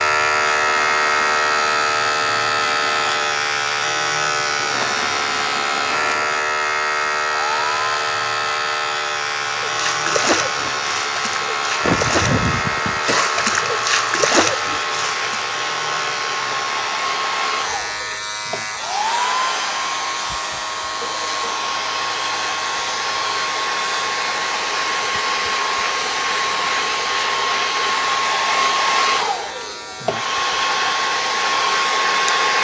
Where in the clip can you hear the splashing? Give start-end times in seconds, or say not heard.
9.7-15.3.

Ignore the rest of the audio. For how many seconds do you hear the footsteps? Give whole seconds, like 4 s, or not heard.
not heard.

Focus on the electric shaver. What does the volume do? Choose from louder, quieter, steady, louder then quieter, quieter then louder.
quieter.